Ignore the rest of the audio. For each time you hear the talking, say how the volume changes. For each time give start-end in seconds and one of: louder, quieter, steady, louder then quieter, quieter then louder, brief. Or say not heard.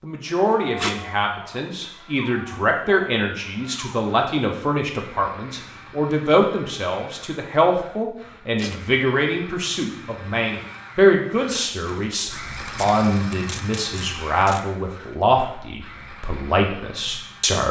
0.0-17.6 steady.